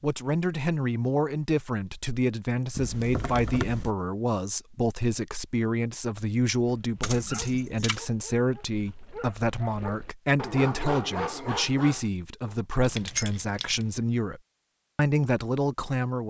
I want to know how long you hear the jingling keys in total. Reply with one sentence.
The jingling keys can be heard for 3 seconds in total.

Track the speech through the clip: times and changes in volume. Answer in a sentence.
The speech can be heard from 0.0 to 16.2 s, at a steady volume.